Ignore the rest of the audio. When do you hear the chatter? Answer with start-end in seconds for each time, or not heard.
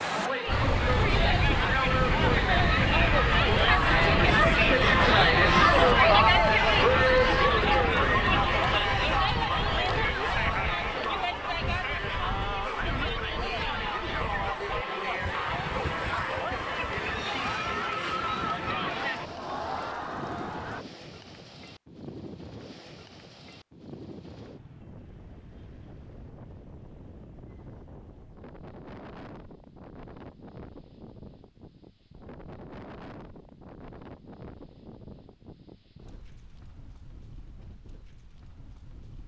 0.0-20.9.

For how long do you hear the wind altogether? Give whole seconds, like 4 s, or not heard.
39 s.